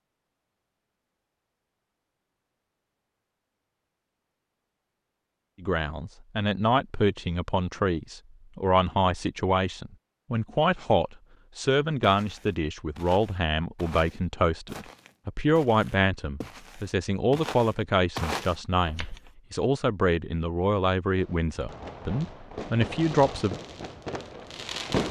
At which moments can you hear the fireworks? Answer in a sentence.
The fireworks can be heard from 21.1 to 25.0 s.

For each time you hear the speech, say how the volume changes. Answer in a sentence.
The speech can be heard from 5.6 to 23.6 s, at a steady volume.